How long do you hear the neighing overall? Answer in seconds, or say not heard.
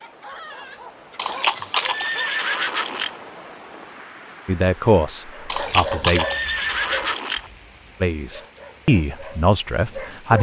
4 s.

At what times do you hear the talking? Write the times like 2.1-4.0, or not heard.
4.5-6.2, 8.0-10.3.